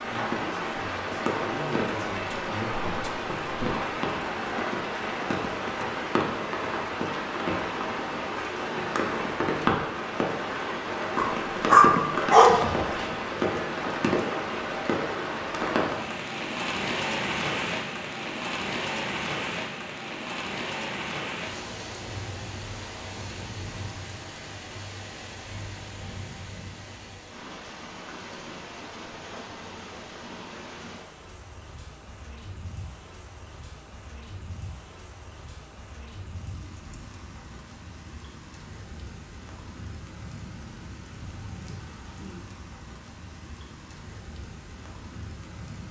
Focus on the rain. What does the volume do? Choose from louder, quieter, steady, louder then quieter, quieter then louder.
quieter.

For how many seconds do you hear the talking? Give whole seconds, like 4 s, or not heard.
4 s.